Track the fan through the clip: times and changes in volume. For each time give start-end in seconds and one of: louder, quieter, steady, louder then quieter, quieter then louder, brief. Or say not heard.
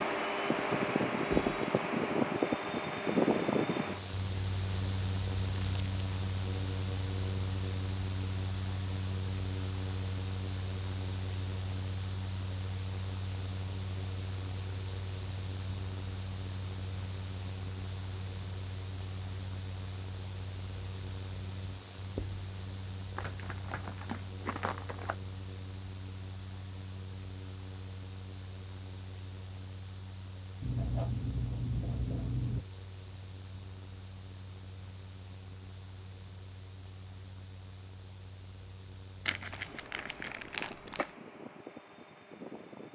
0.0-42.9 quieter.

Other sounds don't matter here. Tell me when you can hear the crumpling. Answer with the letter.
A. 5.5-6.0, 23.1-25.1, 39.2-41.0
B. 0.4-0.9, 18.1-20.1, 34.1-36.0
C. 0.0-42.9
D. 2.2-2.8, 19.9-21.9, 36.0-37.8
A.